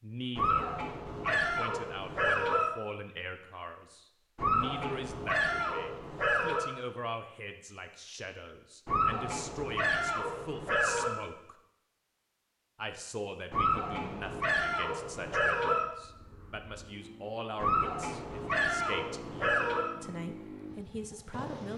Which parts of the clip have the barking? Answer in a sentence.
The barking can be heard from 0.3 to 2.7 s, from 4.3 to 6.7 s, from 8.8 to 11.2 s, from 13.5 to 15.8 s and from 17.6 to 19.9 s.